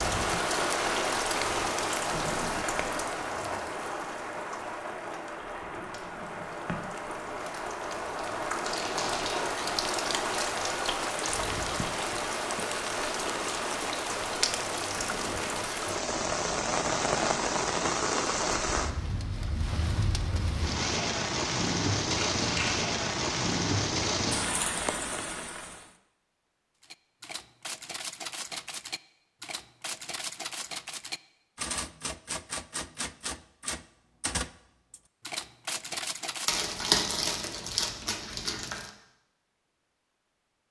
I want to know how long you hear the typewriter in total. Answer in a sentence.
You can hear the typewriter for 10 seconds altogether.